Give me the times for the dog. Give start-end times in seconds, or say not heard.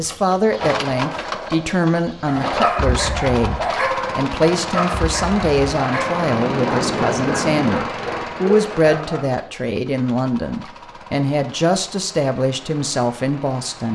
2.2-9.2.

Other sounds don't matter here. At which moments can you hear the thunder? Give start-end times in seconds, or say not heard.
6.2-7.8.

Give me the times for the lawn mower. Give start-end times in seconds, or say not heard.
0.0-13.9.